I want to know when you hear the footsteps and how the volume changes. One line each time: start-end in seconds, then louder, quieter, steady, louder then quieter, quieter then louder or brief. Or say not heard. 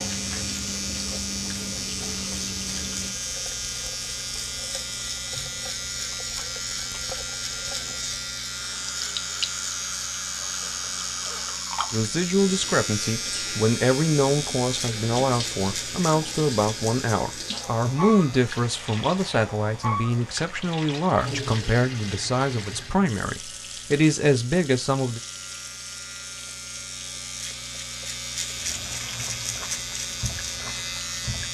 not heard.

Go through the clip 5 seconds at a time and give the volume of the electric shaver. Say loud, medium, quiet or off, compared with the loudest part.
loud, loud, loud, medium, quiet, loud, loud.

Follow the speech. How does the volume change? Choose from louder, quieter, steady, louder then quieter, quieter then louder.
steady.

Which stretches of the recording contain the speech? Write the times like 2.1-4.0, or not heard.
11.9-25.2.